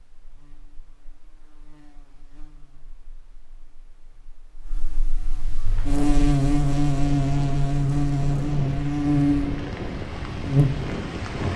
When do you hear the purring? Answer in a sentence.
The purring can't be heard in this clip.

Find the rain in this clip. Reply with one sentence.
The rain can be heard from 5.6 to 11.5 s.